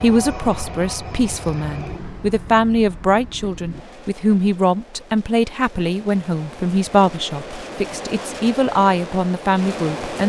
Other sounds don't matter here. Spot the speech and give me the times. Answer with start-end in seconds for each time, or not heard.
0.0-10.2.